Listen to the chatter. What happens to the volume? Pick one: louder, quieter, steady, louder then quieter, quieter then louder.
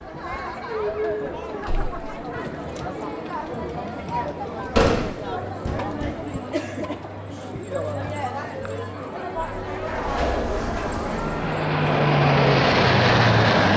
steady.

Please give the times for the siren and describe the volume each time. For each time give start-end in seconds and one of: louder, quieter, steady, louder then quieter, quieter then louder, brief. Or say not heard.
not heard.